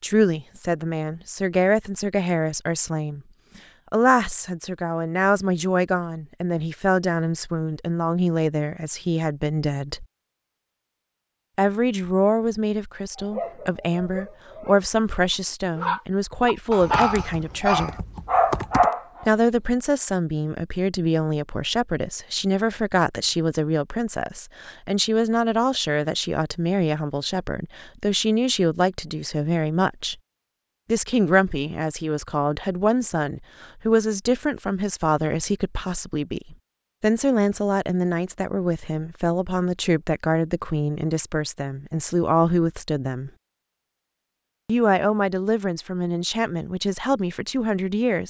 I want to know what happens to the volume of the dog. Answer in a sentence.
The loudness of the dog goes up.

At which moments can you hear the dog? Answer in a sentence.
You can hear the dog from 13.2 to 19.2 s.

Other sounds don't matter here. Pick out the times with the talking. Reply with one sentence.
You can hear the talking from 0.0 to 10.1 s, from 11.6 to 18.1 s, from 19.2 to 30.1 s, from 30.9 to 43.3 s and from 44.6 to 48.2 s.